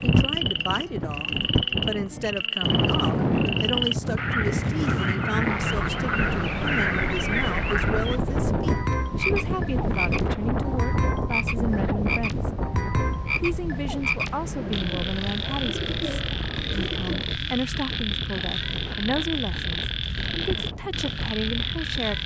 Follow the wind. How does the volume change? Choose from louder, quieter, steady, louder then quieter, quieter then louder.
quieter.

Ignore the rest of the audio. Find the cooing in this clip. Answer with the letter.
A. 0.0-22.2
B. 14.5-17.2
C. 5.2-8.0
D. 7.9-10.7
B.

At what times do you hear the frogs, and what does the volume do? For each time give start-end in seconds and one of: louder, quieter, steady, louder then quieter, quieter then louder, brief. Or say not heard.
0.0-22.2 steady.